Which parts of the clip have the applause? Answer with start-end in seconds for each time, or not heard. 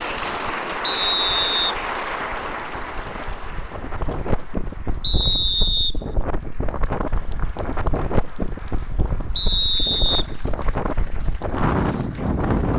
0.0-12.7.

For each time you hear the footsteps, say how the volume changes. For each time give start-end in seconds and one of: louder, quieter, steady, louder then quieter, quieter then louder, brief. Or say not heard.
not heard.